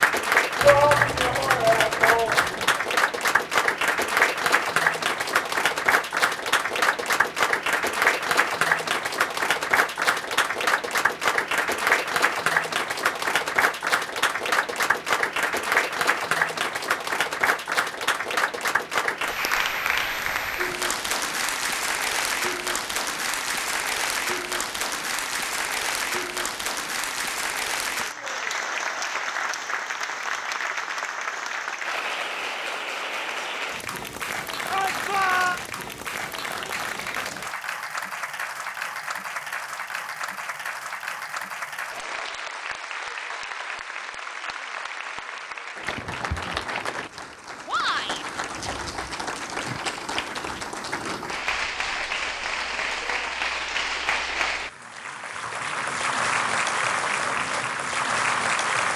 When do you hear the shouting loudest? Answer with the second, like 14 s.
1 s.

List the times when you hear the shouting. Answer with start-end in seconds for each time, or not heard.
0.6-2.8, 34.7-35.6, 47.6-48.2.